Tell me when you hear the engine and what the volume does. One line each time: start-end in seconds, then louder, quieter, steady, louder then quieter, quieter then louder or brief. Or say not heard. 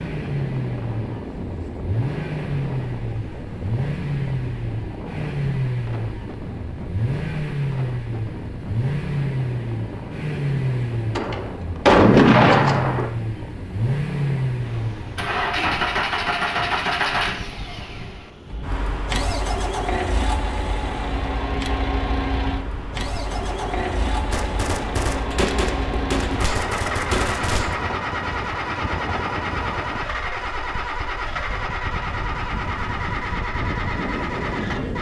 0.0-34.9 steady.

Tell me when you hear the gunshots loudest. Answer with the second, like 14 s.
12 s.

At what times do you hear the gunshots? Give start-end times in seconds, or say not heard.
11.2-13.1, 24.3-27.8.